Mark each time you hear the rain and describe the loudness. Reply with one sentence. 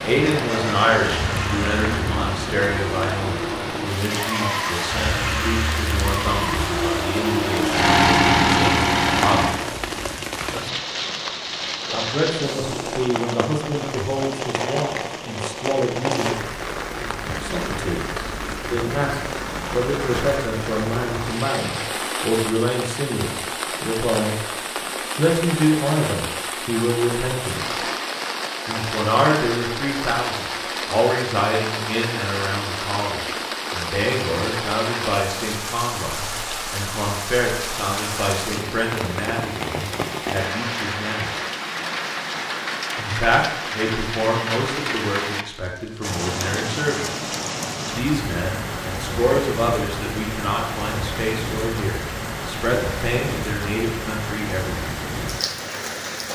You can hear the rain from 0.0 to 56.2 s, at a steady volume.